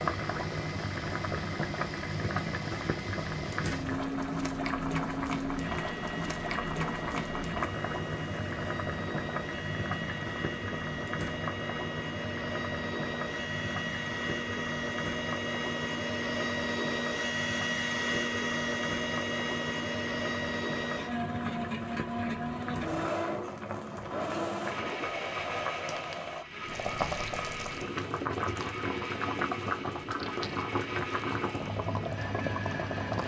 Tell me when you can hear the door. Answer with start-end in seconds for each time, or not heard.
not heard.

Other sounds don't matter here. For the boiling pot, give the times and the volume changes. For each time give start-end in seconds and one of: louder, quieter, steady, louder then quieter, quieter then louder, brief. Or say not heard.
0.0-33.2 quieter then louder.